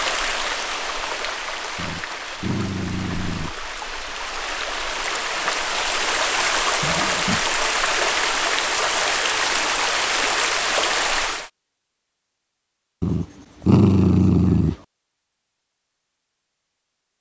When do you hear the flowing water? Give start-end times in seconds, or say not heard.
0.0-11.5.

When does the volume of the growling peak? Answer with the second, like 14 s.
14 s.